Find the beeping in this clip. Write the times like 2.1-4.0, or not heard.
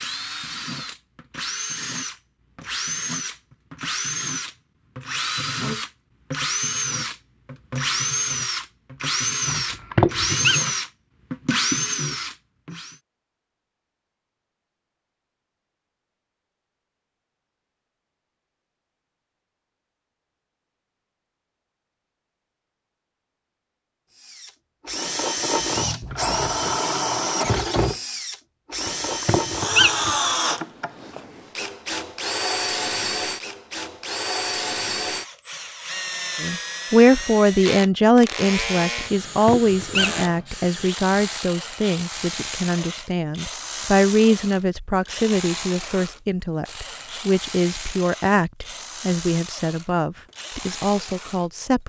not heard.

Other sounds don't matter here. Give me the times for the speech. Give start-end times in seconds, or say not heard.
36.4-51.8.